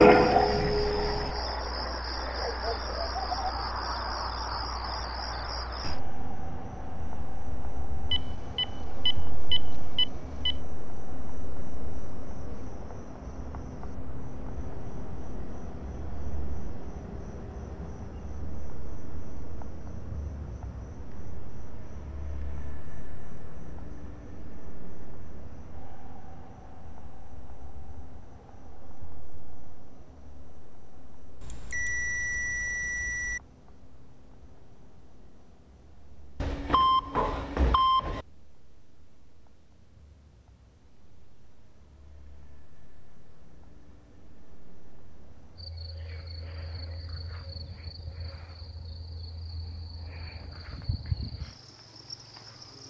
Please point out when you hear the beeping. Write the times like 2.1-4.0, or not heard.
8.1-10.6, 31.4-33.4, 36.4-38.2.